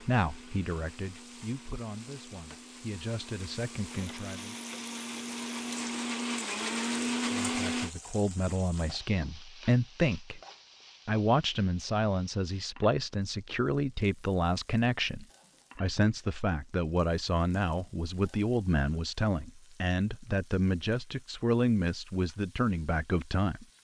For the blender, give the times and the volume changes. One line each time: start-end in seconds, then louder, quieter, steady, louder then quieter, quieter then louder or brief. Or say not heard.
0.0-8.0 louder.